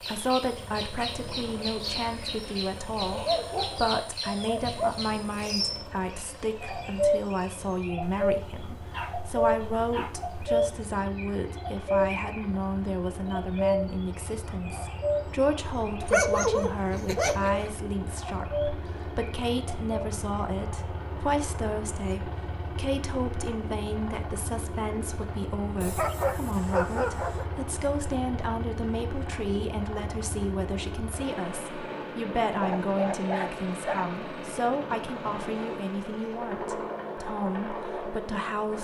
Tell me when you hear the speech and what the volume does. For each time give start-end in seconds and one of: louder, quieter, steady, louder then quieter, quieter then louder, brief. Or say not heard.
0.0-38.7 steady.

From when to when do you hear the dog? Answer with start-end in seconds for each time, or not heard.
3.0-4.9, 8.0-10.6, 16.1-17.7, 25.8-27.4, 32.5-34.1.